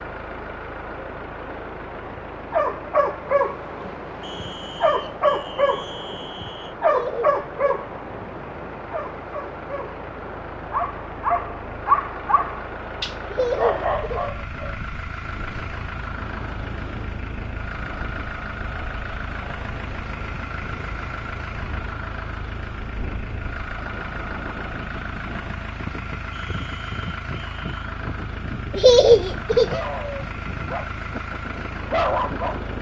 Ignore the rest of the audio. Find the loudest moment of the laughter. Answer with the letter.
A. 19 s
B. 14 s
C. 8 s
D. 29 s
D.